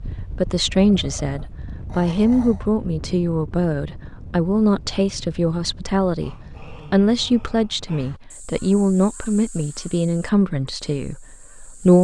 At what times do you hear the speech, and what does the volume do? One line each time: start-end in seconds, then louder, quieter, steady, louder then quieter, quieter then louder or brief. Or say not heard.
0.1-11.9 steady.